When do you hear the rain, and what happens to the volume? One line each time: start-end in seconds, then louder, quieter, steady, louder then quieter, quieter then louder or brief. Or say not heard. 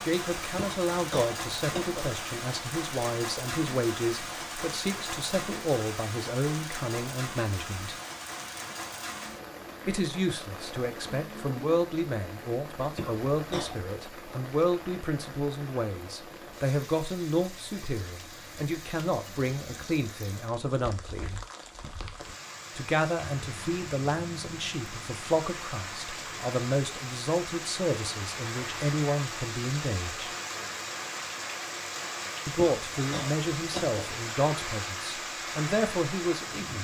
0.0-36.7 quieter then louder.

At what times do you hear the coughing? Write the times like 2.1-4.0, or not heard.
0.6-2.1, 12.9-13.9, 32.5-34.1.